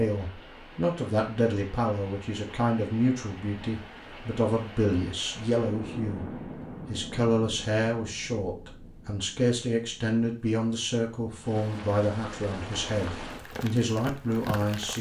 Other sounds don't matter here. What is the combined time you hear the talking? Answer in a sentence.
The talking can be heard for 14 seconds in total.